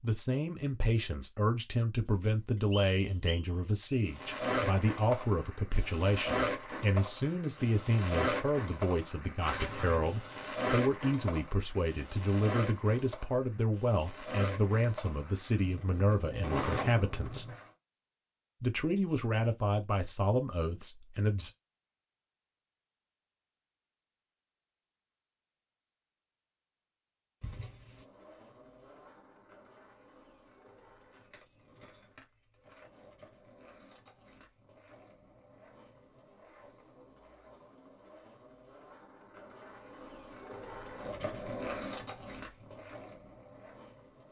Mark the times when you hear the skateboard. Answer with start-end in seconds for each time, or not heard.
4.1-17.7, 27.9-44.2.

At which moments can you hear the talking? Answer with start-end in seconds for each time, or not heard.
0.0-17.4, 18.6-21.5.